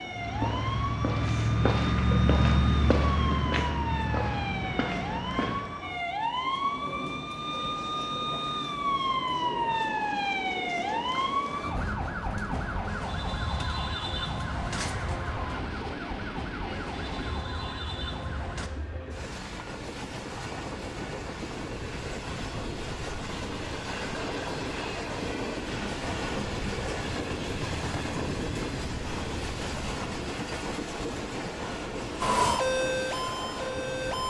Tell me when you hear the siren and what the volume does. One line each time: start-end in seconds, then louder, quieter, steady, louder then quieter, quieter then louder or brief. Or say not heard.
0.0-18.7 louder then quieter
32.2-34.2 brief.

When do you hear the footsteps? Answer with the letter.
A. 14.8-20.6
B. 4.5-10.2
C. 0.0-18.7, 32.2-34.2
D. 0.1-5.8
D.